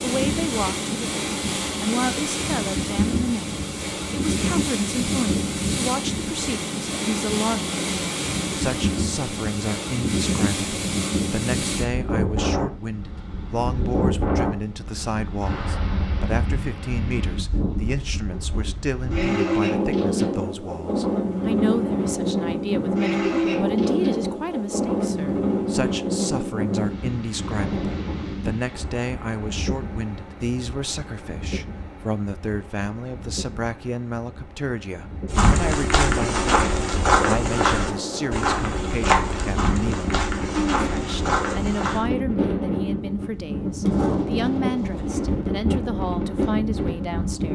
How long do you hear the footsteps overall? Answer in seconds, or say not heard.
7 s.